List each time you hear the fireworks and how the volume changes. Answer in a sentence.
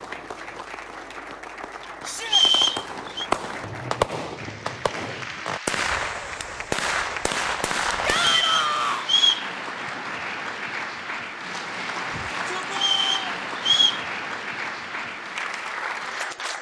You can hear the fireworks from 0.0 to 8.4 s, getting louder.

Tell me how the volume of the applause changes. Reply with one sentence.
The loudness of the applause goes up.